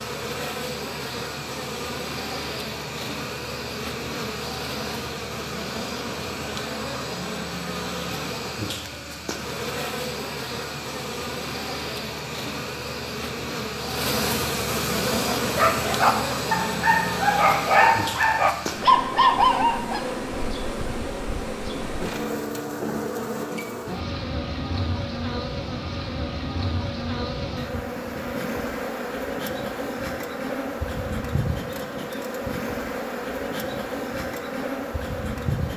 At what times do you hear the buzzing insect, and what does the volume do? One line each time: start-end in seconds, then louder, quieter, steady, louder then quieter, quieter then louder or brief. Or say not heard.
0.0-35.7 steady.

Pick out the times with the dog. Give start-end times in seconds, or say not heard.
15.2-20.1.